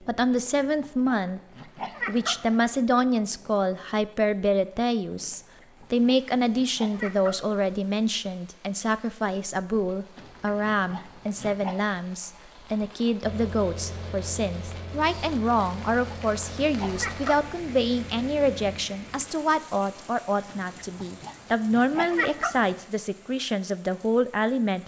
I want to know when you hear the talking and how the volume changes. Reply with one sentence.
The talking can be heard briefly from 0.0 to 1.4 s; and from 2.0 to 24.8 s, at a steady volume.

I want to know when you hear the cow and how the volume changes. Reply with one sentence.
You can't hear the cow here.